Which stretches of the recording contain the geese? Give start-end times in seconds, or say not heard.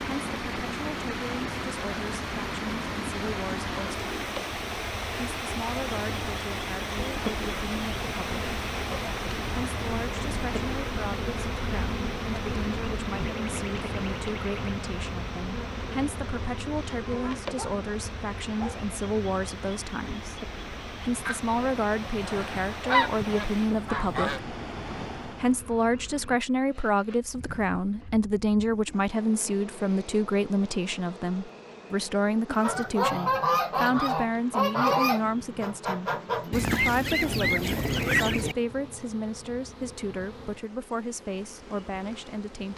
21.2-24.4, 32.5-38.5.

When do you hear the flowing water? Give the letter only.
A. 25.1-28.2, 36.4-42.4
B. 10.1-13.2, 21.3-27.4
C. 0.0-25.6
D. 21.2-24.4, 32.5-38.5
C.